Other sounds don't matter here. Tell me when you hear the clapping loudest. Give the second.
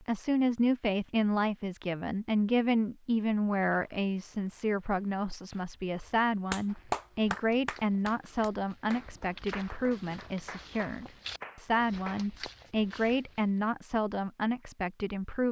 7 s.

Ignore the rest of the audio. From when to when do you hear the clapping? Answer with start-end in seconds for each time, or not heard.
6.5-12.2.